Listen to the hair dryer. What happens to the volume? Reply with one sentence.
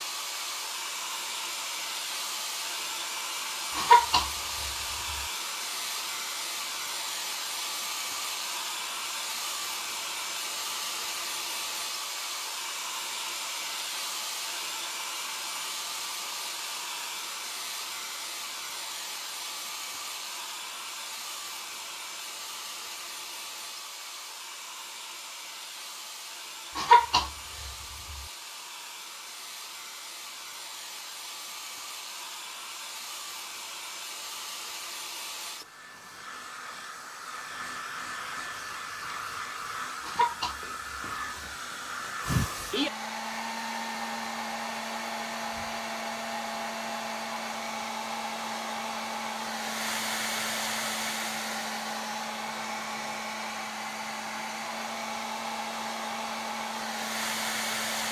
The volume of the hair dryer goes down, then up.